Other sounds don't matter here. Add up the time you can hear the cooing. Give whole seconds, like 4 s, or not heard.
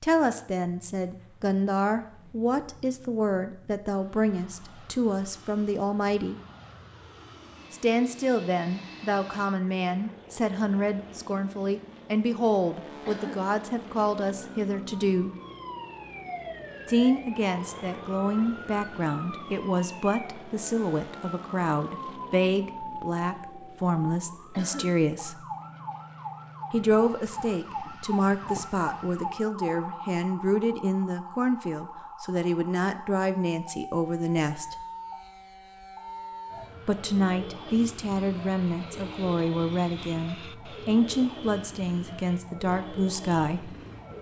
not heard.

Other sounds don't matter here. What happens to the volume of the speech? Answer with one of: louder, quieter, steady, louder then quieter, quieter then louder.
steady.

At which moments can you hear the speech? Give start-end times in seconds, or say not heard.
0.0-6.3, 7.7-15.3, 16.9-25.4, 26.7-34.8, 36.9-43.8.